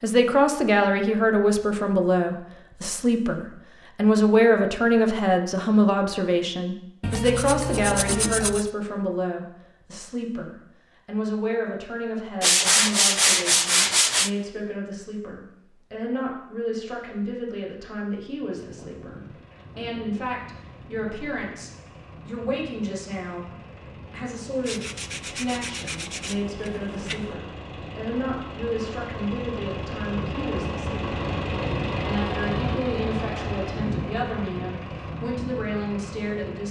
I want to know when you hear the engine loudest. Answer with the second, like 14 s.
32 s.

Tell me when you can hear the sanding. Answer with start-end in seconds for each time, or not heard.
7.0-8.7, 12.4-14.3, 24.6-27.4.